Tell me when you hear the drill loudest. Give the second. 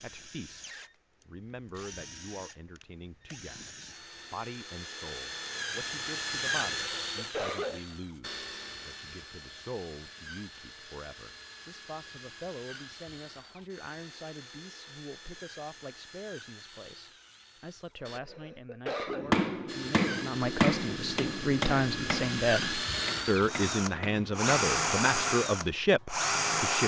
25 s.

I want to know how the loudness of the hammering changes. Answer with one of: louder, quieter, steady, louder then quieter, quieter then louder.
quieter.